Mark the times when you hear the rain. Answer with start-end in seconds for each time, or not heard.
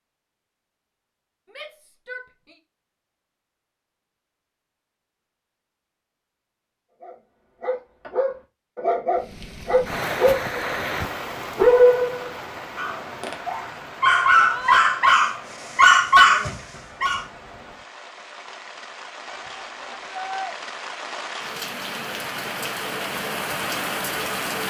9.2-24.6.